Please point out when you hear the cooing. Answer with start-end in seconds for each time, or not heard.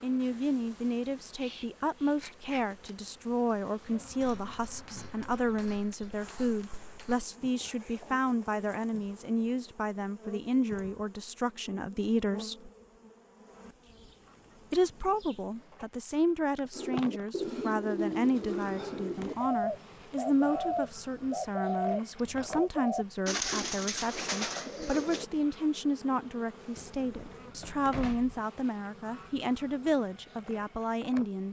16.7-25.2.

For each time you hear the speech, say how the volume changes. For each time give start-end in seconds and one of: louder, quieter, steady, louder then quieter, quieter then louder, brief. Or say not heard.
0.0-12.7 steady
14.7-31.4 steady.